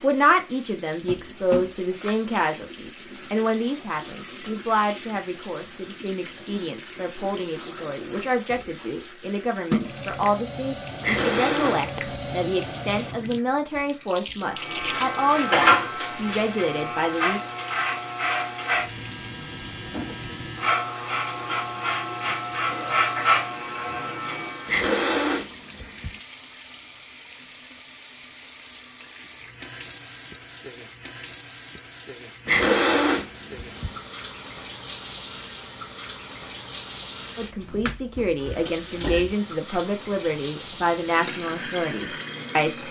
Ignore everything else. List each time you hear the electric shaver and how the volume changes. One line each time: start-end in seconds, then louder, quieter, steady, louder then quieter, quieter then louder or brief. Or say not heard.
14.4-24.8 quieter then louder.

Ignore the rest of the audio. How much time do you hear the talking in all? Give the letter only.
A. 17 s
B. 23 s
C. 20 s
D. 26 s
B.